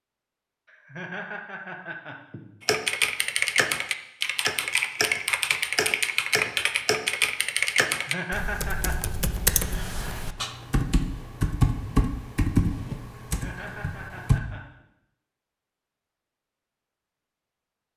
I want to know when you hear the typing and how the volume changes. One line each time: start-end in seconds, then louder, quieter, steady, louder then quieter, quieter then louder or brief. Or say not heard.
2.6-14.4 steady.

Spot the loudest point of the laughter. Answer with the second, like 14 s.
8 s.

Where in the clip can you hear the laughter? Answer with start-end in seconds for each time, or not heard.
0.7-2.5, 7.9-9.1, 13.2-14.8.